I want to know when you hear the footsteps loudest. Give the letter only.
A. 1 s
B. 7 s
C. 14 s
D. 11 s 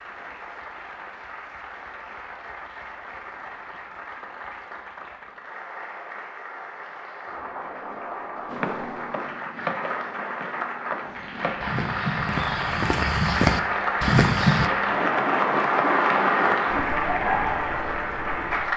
C.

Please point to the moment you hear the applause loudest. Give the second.
16 s.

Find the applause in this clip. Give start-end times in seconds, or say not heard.
0.0-18.7.